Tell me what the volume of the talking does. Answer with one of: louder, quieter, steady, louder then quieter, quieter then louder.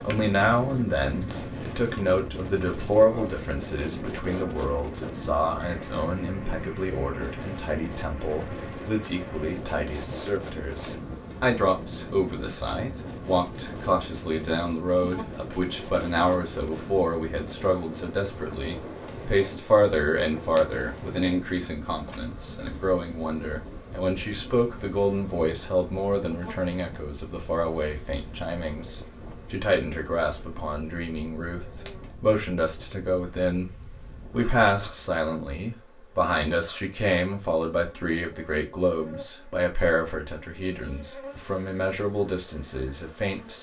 steady.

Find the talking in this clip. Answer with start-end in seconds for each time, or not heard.
0.0-33.7, 34.3-43.5.